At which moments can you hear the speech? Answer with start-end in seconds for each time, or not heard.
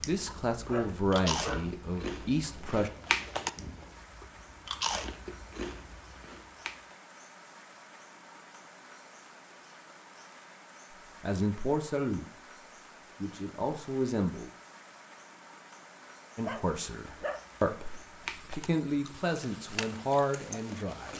0.1-2.9, 11.2-12.2, 13.2-14.5, 16.4-21.1.